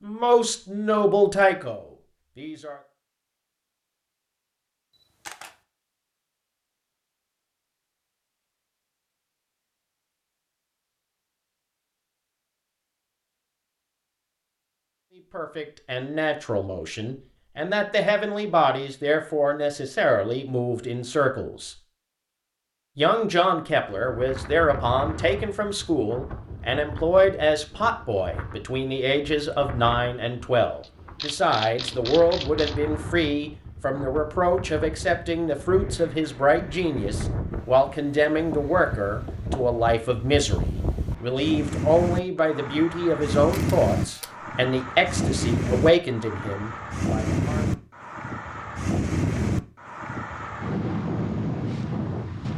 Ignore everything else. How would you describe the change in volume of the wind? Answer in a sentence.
The volume of the wind goes up.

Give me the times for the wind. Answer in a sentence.
The wind can be heard from 23.9 to 52.5 s.